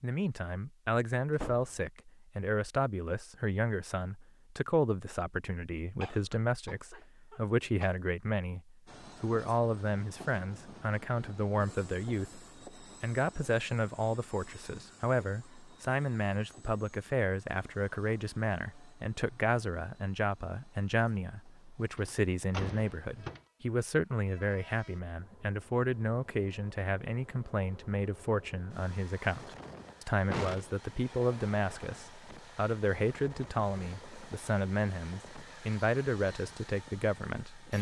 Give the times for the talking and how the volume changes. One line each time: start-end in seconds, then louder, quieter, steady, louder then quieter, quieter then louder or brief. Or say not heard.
0.0-37.7 steady.